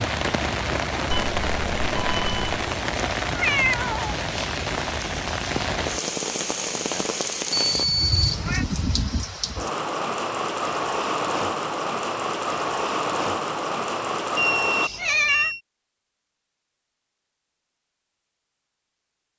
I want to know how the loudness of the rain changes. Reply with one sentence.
The volume of the rain stays about the same.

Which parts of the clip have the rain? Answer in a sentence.
You can hear the rain from 0.0 to 14.9 s.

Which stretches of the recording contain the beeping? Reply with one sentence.
The beeping can be heard from 1.1 to 2.6 s, from 7.5 to 8.6 s and from 14.3 to 15.6 s.